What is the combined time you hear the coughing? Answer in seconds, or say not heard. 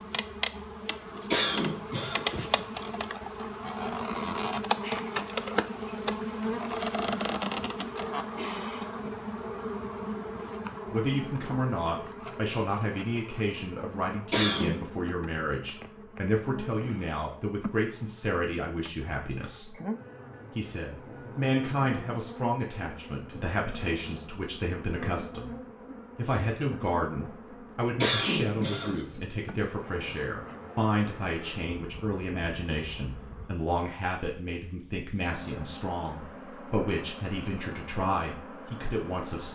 3 s.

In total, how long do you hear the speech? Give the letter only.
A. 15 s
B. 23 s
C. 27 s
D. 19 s
C.